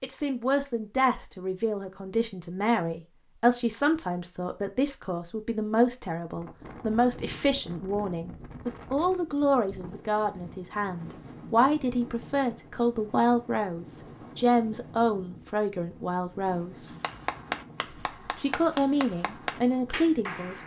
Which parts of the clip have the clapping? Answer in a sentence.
You can hear the clapping from 16.9 to 20.6 s.